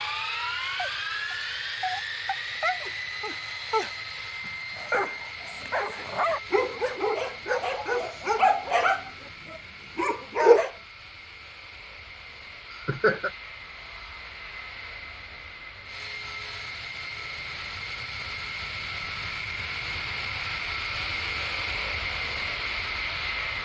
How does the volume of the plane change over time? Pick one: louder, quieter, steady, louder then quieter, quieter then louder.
quieter then louder.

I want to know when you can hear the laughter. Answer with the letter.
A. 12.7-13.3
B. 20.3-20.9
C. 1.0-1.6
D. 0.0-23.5
A.